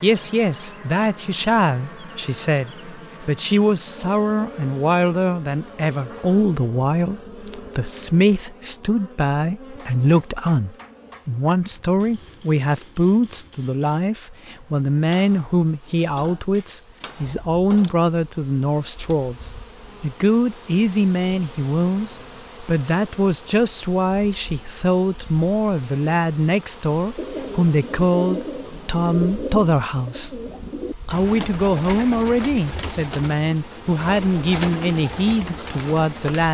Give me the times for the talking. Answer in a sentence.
The talking can be heard from 0.0 to 30.4 s and from 31.1 to 36.4 s.